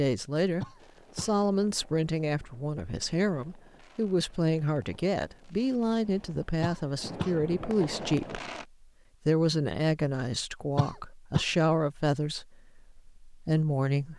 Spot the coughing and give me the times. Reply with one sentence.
The coughing can be heard from 0.6 to 1.4 s, from 6.6 to 7.3 s and from 10.8 to 11.4 s.